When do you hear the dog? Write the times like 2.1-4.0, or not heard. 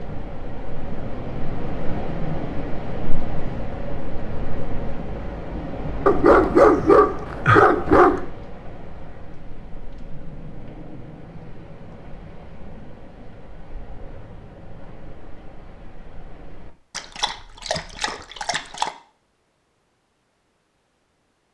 6.0-8.2, 16.9-18.9.